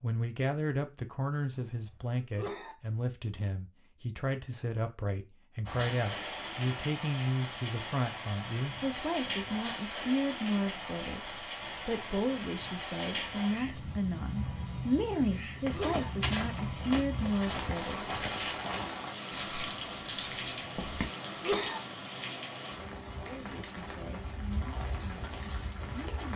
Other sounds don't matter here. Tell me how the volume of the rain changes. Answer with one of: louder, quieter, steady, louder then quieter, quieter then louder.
steady.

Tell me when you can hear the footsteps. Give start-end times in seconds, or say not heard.
15.7-21.1.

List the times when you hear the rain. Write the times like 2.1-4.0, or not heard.
5.7-26.3.